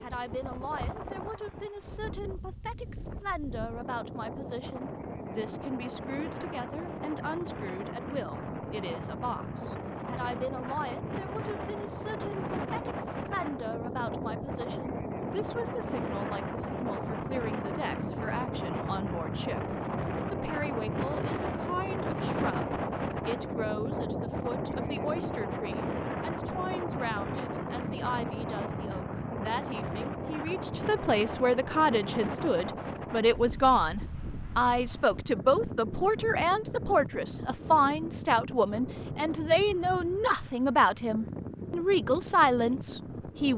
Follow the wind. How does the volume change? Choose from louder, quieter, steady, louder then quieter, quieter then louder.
louder then quieter.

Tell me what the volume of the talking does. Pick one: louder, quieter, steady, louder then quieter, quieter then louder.
louder.